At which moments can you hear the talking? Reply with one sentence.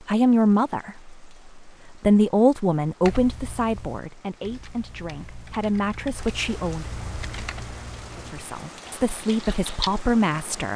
The talking can be heard from 0.1 to 6.8 s and from 8.3 to 10.7 s.